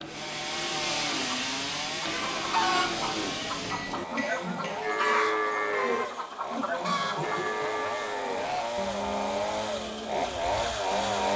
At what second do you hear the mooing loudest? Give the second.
5 s.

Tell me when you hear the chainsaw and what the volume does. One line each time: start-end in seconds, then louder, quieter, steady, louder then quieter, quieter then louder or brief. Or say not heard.
0.0-11.3 quieter then louder.